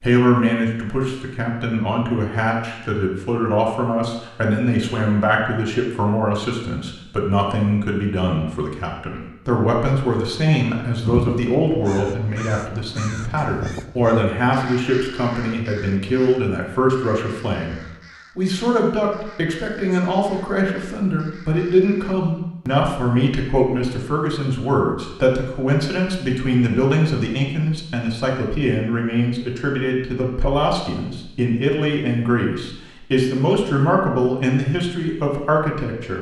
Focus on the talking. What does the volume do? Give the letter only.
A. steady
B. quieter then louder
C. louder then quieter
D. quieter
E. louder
A.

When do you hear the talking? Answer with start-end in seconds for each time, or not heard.
0.0-36.1.